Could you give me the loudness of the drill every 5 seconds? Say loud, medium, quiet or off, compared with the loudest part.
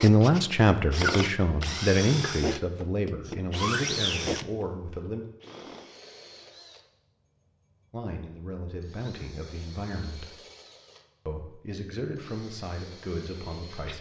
loud, quiet, quiet.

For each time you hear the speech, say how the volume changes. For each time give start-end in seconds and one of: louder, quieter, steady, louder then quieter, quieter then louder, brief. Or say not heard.
0.0-5.2 quieter
7.9-10.3 brief
11.2-13.9 brief.